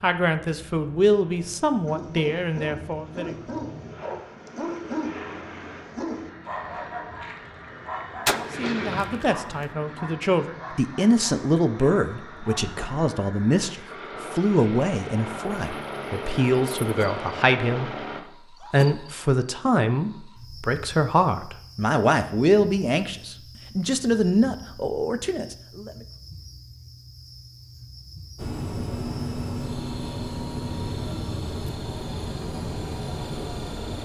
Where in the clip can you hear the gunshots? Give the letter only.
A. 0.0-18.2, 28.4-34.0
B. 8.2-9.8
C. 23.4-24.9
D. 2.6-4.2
B.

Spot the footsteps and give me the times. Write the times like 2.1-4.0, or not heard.
not heard.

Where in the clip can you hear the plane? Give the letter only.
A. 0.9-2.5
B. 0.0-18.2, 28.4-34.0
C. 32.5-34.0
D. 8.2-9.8
B.